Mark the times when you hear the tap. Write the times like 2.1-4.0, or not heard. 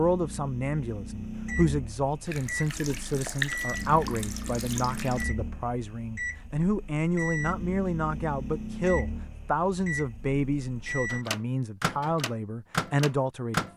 2.2-5.2.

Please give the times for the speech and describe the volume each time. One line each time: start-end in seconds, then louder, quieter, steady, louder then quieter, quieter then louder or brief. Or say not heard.
0.0-13.7 steady.